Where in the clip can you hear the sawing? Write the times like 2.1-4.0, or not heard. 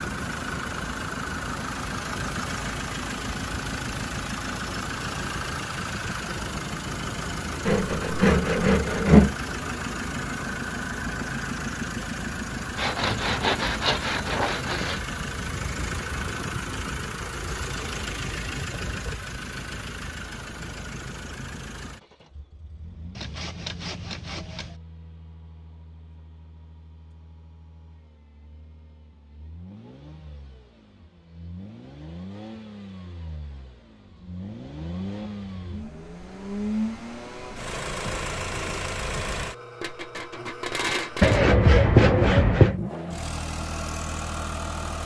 7.7-9.3, 12.8-15.0, 23.1-24.7, 41.2-42.8.